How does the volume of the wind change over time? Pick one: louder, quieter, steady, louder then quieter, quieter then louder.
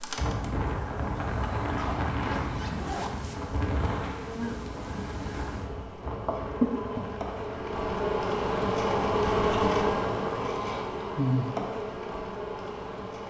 quieter.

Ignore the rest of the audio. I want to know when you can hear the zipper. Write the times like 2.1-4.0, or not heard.
1.8-3.3.